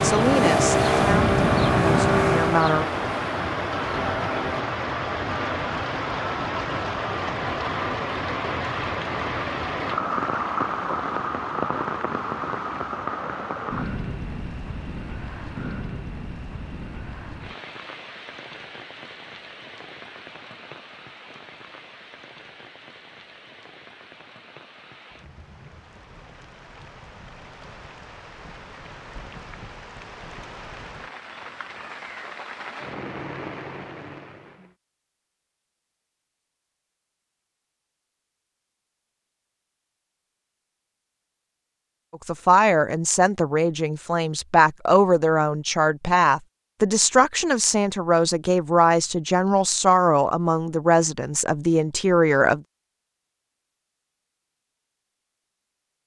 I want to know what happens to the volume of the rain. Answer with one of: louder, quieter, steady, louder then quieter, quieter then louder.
quieter then louder.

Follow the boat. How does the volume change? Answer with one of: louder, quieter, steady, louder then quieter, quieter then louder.
quieter.